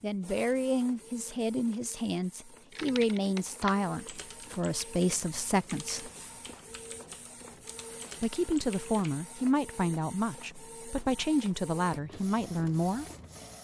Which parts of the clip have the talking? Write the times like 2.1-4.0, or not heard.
0.0-6.1, 8.2-13.1.